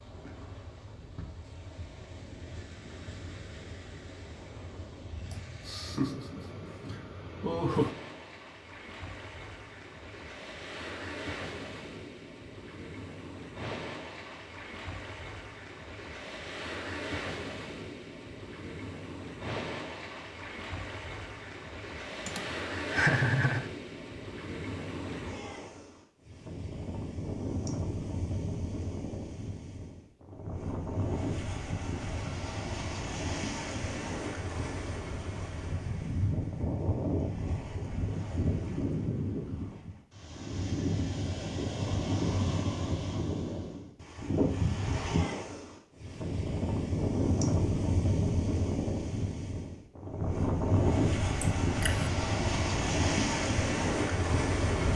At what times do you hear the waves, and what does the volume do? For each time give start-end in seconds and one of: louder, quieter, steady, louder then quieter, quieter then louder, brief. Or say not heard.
0.0-54.9 louder.